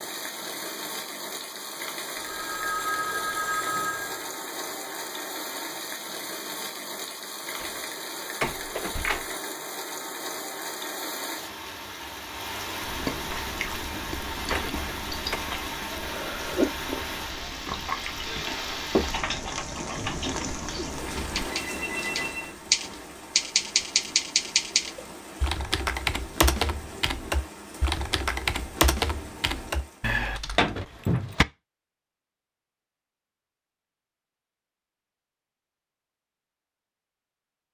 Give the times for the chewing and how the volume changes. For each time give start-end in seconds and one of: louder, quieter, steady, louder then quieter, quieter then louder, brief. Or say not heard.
12.8-21.5 louder then quieter.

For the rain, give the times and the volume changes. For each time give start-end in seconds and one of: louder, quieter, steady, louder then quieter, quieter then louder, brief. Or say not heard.
0.0-30.1 quieter.